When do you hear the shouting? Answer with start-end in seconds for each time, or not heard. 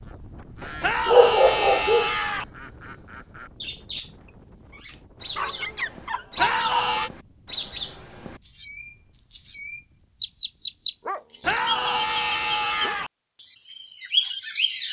0.8-2.5, 6.3-7.1, 11.4-13.1.